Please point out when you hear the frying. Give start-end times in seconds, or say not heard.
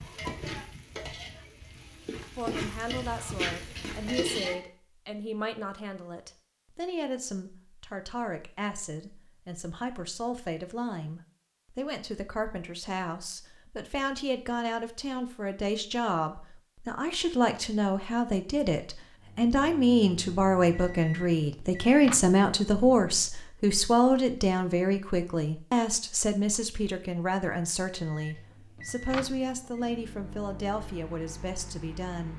0.0-4.5.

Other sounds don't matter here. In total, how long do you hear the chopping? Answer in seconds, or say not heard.
not heard.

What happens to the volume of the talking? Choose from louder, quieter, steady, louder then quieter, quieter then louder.
louder then quieter.